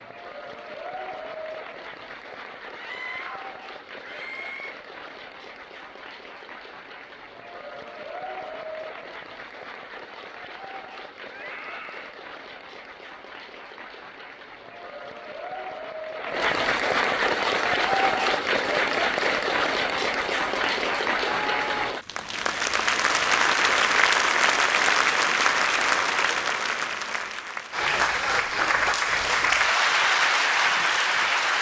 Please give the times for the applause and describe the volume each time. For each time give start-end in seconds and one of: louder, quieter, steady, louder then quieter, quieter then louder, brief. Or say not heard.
0.0-31.5 louder.